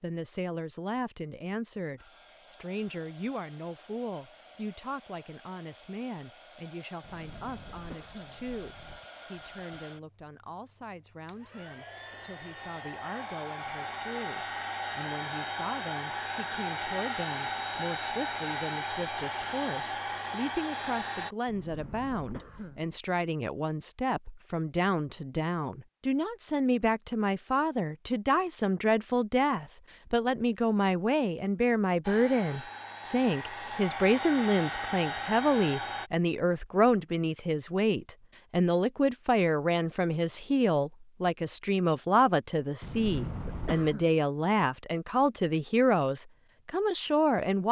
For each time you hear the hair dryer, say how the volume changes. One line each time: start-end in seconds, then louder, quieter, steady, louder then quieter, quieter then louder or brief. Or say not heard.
1.9-21.4 louder
32.0-36.1 louder.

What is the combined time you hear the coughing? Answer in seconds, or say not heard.
5 s.